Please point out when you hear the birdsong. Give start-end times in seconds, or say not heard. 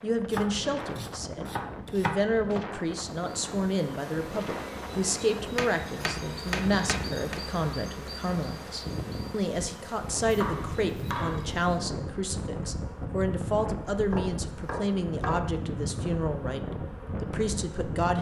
not heard.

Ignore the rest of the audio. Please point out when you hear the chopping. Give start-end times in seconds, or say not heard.
0.3-2.6, 5.5-7.4, 10.2-11.5, 14.1-15.4.